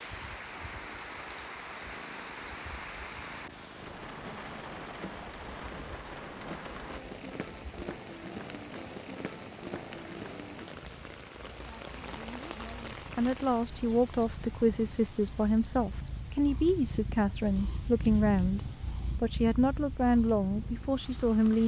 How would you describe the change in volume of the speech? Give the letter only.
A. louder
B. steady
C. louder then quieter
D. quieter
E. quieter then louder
B.